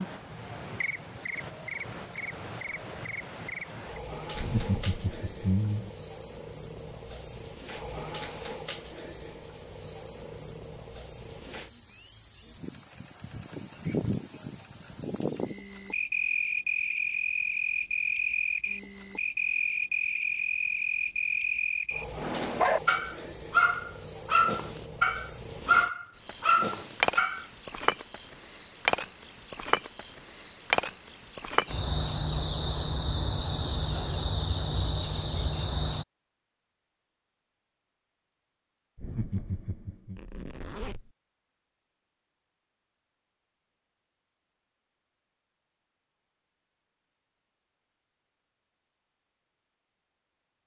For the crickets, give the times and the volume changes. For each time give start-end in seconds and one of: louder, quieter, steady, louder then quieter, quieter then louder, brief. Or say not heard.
0.0-36.0 steady.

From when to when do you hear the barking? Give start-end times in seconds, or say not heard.
22.2-27.4.